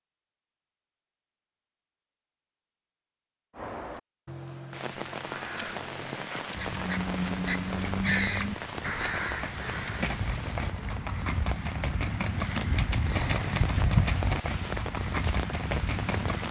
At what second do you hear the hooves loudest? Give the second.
14 s.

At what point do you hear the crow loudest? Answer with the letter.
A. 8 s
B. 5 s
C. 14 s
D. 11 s
A.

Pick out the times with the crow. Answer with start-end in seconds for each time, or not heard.
3.5-10.1.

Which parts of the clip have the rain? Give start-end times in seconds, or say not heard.
4.7-16.4.